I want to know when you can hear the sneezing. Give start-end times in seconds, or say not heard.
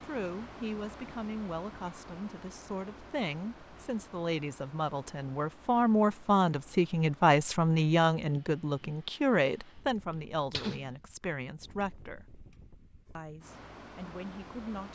10.1-10.9.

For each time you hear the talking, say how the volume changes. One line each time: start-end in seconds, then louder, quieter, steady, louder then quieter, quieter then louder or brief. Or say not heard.
0.0-12.4 louder then quieter
13.2-14.9 brief.